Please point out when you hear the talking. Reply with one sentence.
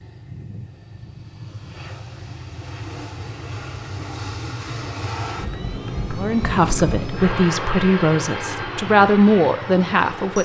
You can hear the talking from 6.2 to 10.4 s.